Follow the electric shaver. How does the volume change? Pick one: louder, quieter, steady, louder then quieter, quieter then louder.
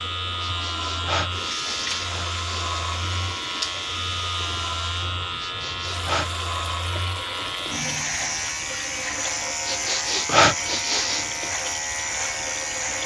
steady.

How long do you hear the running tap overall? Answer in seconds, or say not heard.
13 s.